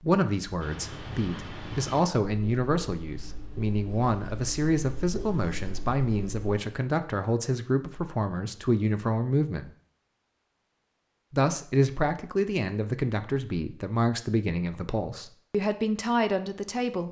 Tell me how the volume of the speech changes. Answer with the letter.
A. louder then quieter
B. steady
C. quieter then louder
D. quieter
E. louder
B.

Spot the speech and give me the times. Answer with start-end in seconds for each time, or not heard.
0.0-9.7, 11.3-17.0.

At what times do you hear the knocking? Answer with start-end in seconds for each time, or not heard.
not heard.